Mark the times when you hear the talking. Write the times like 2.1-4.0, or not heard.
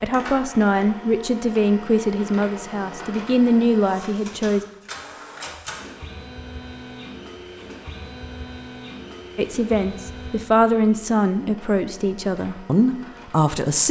0.0-4.7, 9.3-13.8.